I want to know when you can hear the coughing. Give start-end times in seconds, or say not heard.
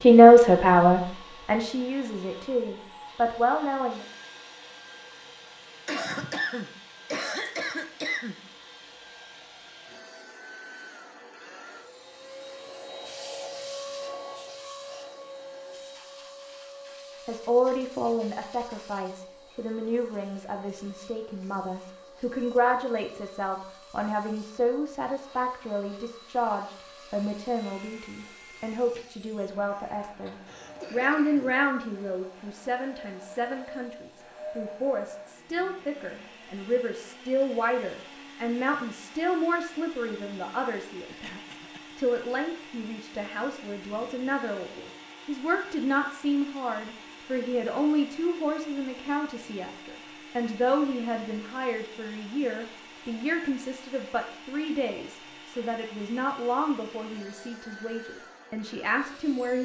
5.8-8.3, 30.4-31.6, 41.0-42.0.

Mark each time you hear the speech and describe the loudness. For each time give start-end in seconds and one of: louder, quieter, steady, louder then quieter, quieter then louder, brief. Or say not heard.
0.0-4.0 quieter then louder
17.2-59.6 steady.